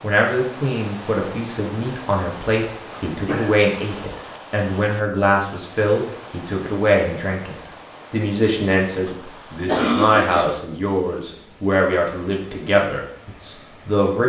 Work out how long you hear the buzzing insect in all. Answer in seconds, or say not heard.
not heard.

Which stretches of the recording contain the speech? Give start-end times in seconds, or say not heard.
0.0-14.2.